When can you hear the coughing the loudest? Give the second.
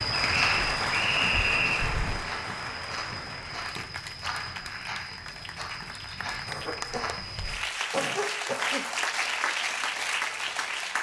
8 s.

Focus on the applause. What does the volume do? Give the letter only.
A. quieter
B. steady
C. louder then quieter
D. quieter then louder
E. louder
D.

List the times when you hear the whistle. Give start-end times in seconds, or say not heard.
0.3-1.9.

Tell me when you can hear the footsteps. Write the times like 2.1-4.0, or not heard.
0.0-7.5.